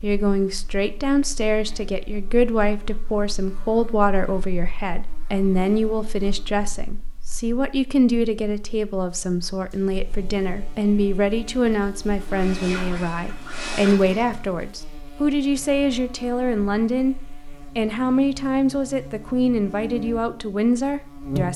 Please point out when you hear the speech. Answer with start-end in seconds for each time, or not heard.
0.0-17.1, 17.8-21.5.